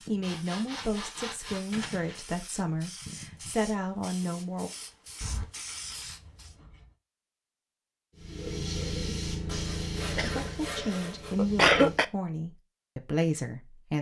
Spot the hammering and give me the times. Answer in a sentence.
You can't hear the hammering here.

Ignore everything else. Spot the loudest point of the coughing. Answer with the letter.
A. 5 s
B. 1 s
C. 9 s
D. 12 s
D.